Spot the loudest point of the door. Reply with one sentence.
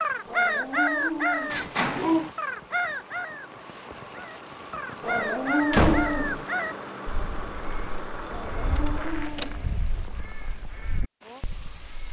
The loudest moment of the door is at 6 seconds.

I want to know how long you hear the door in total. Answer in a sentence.
The door can be heard for 2 seconds in total.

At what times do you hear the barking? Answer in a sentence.
You can hear the barking from 0.2 to 2.3 s, from 5.0 to 6.5 s and from 8.2 to 9.8 s.